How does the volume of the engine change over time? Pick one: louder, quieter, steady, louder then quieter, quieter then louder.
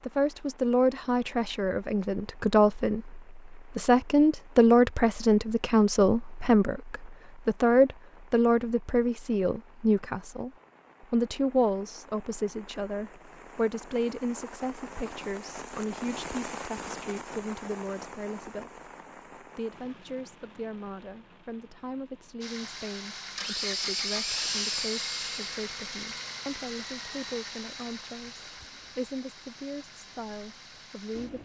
quieter.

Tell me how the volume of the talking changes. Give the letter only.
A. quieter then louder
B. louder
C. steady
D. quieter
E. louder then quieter
D.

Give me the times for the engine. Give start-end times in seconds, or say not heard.
22.4-31.4.